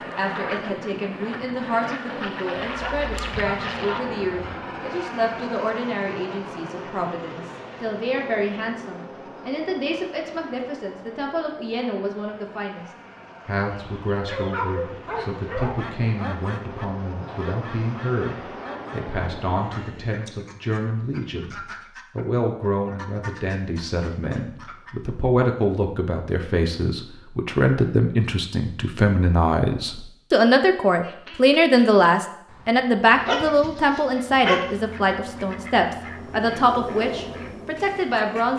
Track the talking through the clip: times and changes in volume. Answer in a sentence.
The talking can be heard from 0.0 to 38.5 s, getting louder.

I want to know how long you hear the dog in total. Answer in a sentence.
The dog can be heard for 6 seconds in total.